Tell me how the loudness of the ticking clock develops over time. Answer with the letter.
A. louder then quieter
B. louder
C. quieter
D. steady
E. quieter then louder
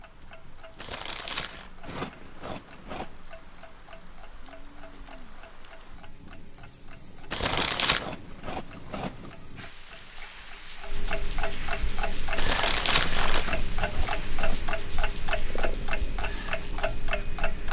B.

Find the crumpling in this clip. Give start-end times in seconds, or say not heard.
0.8-1.7, 7.3-8.1, 12.3-13.4.